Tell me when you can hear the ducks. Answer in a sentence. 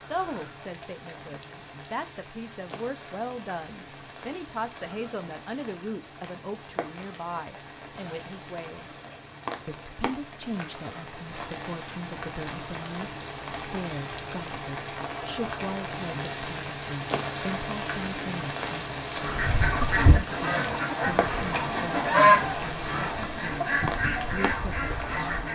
You can hear the ducks from 19.2 to 25.4 s.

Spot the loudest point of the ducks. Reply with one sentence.
The volume of the ducks peaks at 22 seconds.